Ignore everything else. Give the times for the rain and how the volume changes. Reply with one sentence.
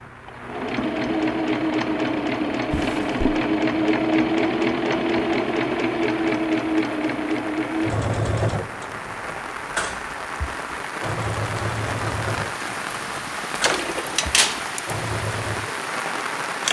The rain can be heard from 0.0 to 16.6 s, getting louder.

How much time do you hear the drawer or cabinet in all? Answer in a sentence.
The drawer or cabinet can be heard for 2 seconds in total.